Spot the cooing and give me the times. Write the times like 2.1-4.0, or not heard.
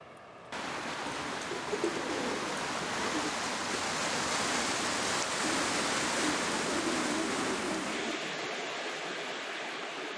1.1-3.4, 5.4-8.2.